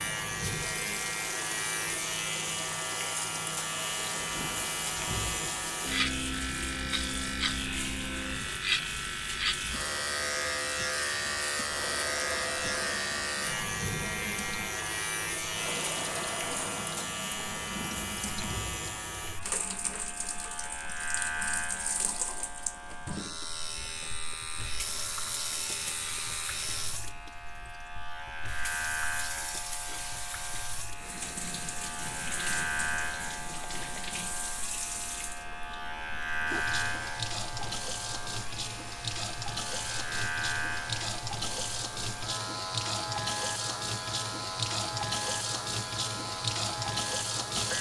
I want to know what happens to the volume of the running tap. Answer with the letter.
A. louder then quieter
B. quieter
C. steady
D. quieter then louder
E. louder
E.